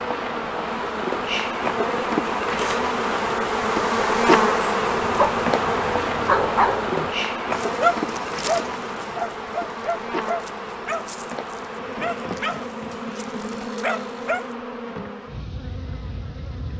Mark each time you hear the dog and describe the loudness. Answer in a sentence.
The dog can be heard from 5.0 to 14.4 s, getting quieter.